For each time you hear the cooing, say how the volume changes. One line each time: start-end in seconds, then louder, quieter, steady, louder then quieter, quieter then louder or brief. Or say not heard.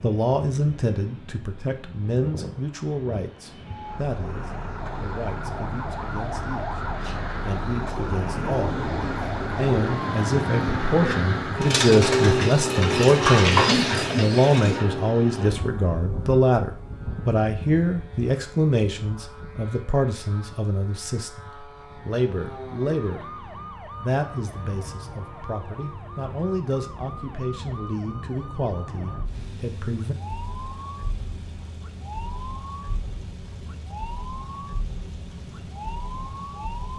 7.0-14.8 louder.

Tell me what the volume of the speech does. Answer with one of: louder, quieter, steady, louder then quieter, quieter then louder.
louder then quieter.